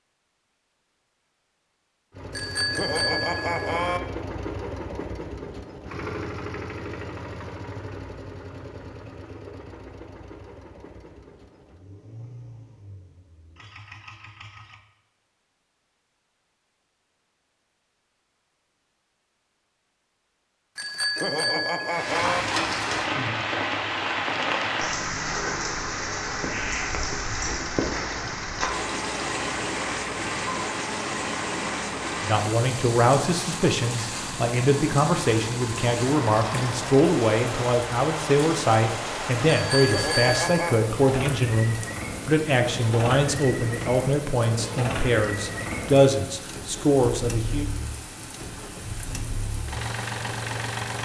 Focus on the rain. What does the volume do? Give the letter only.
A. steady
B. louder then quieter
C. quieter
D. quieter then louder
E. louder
C.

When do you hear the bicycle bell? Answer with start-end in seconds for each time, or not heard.
2.3-4.0, 20.8-22.4, 39.6-40.8.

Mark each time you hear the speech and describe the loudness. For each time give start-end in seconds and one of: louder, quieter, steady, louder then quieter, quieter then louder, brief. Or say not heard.
32.2-47.7 steady.